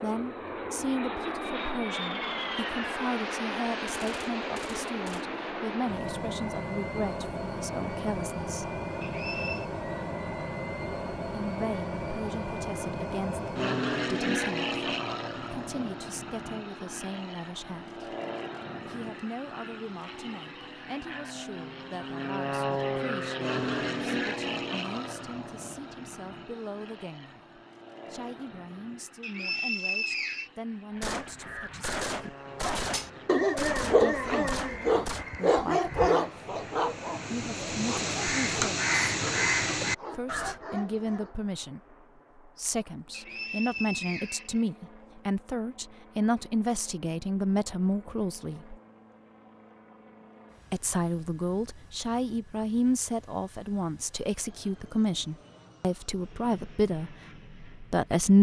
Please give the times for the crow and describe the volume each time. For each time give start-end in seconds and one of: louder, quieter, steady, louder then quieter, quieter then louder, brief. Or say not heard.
30.9-40.5 louder.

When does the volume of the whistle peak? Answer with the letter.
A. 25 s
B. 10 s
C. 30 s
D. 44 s
C.